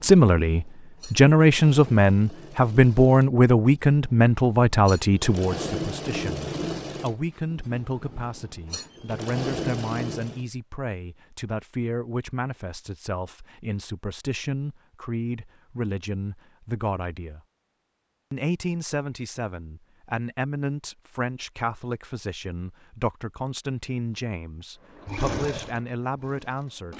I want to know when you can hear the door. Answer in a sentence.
The door can't be heard in this clip.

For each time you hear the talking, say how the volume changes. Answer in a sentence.
You can hear the talking from 0.0 to 17.4 s, getting quieter; and from 18.3 to 26.9 s, at a steady volume.